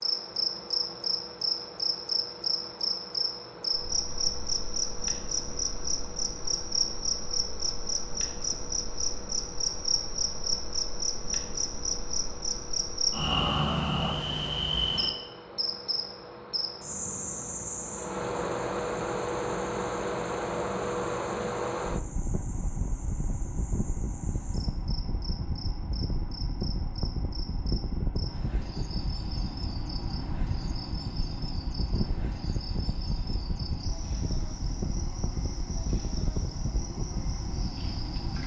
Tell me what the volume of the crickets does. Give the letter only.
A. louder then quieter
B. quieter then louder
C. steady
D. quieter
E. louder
D.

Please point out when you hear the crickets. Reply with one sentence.
The crickets can be heard from 0.0 to 38.4 s.